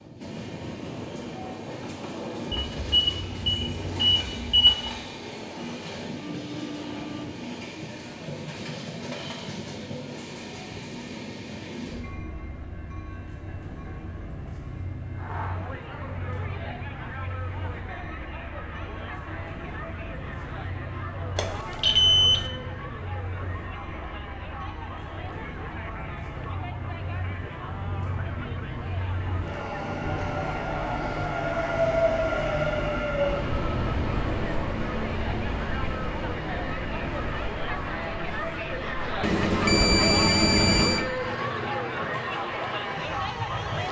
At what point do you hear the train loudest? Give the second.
32 s.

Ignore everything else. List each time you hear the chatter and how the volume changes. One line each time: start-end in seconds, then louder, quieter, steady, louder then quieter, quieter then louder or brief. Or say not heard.
15.2-43.8 louder.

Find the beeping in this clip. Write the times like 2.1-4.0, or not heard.
2.5-5.0, 21.4-22.5, 39.2-41.1.